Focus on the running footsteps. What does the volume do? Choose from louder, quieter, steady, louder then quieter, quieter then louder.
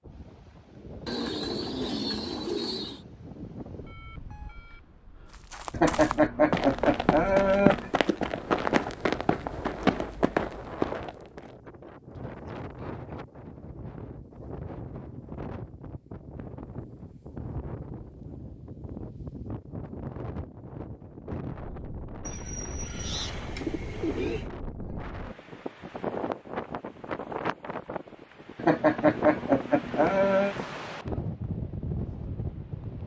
steady.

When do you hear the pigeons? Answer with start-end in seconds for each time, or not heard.
1.1-3.0, 22.2-24.5.